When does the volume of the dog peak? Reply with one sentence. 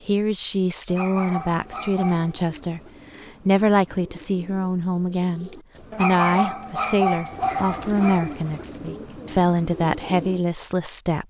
The volume of the dog peaks at 7 seconds.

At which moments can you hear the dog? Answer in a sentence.
The dog can be heard from 0.8 to 2.4 s and from 5.9 to 8.3 s.